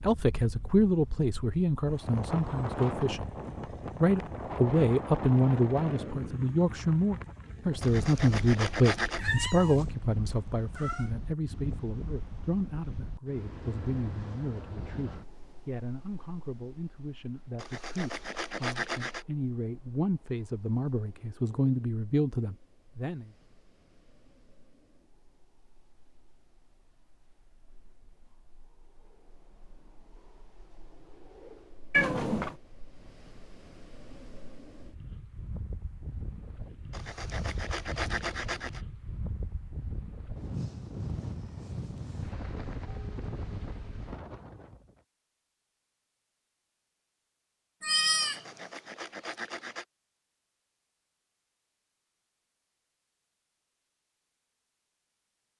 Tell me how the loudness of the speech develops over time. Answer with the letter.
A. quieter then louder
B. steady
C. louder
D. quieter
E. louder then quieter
A.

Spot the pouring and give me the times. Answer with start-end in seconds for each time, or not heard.
not heard.